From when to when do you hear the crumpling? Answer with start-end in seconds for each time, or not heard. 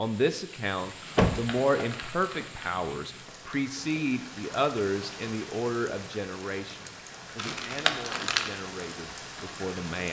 1.0-2.8, 7.3-8.6.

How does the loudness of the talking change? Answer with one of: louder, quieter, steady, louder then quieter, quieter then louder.
quieter.